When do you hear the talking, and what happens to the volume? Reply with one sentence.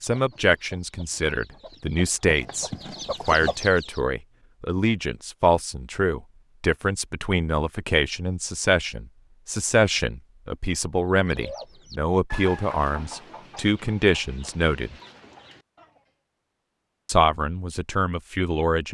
You can hear the talking from 0.0 to 14.9 s, at a steady volume; and briefly from 17.1 to 18.8 s.